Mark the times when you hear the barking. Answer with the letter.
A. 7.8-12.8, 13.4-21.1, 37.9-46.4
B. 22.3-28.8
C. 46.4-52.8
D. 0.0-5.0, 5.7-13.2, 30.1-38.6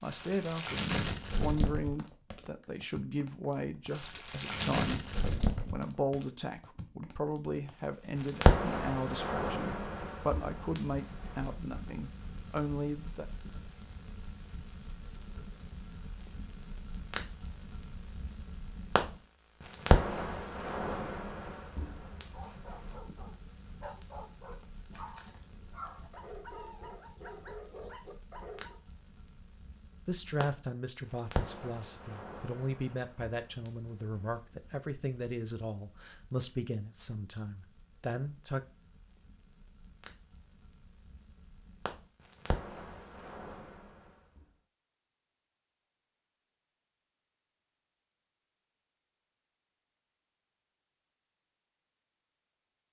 B.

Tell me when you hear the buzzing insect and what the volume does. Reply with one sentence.
The buzzing insect can't be heard in this clip.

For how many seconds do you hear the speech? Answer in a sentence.
The speech can be heard for 21 seconds in total.